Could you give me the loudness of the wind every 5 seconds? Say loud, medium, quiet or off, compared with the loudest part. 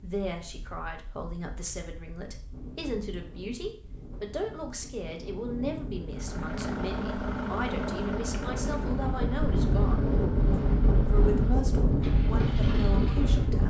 quiet, medium, loud.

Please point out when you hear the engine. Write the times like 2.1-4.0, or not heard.
6.1-13.6.